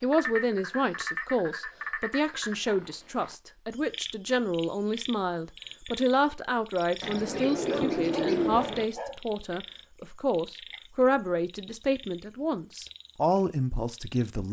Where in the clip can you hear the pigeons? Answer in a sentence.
You can hear the pigeons from 7.0 to 8.8 s.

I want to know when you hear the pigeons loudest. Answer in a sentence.
The loudest moment of the pigeons is at 8 seconds.